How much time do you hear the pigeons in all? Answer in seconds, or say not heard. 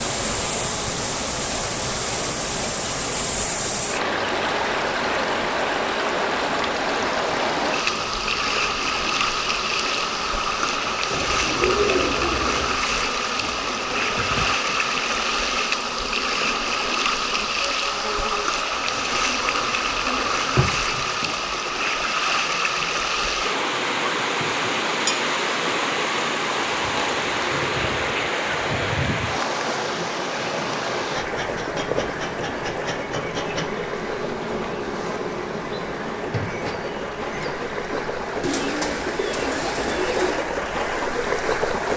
4 s.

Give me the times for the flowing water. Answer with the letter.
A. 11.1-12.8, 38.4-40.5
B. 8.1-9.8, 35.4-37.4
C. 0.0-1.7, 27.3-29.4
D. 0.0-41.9
D.